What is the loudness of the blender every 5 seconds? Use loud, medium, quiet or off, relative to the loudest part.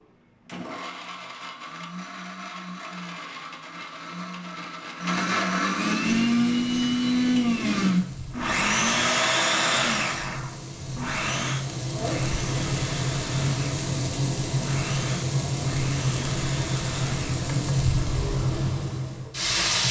quiet, loud, medium, quiet.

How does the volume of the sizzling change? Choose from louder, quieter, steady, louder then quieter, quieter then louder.
louder.